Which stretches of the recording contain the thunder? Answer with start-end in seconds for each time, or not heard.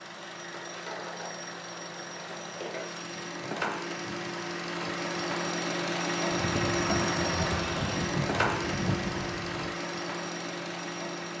6.3-9.8.